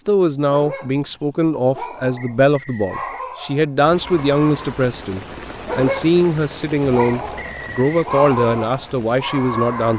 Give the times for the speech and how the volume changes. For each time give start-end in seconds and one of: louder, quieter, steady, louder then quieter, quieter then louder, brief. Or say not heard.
0.1-9.9 steady.